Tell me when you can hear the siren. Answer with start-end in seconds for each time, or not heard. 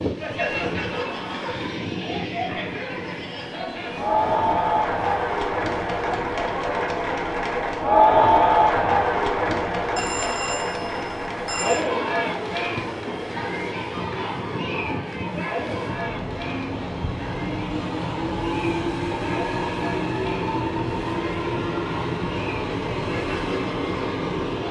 not heard.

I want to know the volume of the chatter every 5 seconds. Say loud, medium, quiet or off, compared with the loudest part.
medium, loud, medium, quiet, quiet.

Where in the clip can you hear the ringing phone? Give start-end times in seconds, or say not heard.
9.9-11.8.